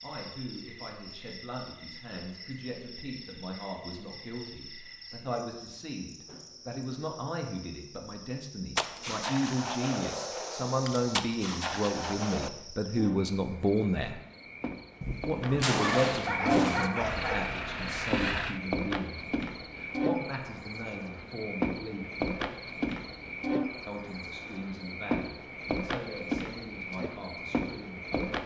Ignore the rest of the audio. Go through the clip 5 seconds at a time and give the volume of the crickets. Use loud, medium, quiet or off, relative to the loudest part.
quiet, quiet, medium, loud, loud, loud.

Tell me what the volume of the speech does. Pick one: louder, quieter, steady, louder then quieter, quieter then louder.
louder then quieter.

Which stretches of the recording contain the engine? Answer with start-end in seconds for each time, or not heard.
16.9-18.6.